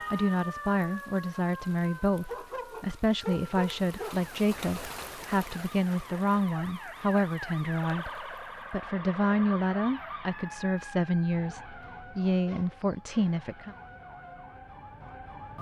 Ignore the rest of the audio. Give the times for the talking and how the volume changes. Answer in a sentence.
You can hear the talking from 0.1 to 13.8 s, at a steady volume.